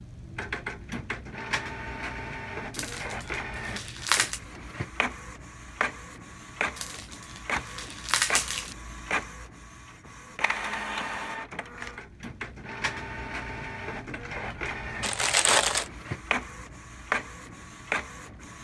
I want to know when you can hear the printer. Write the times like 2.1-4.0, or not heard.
0.0-18.5.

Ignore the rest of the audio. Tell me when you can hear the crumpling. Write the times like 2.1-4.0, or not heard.
2.7-4.4, 6.8-8.8, 15.0-15.9.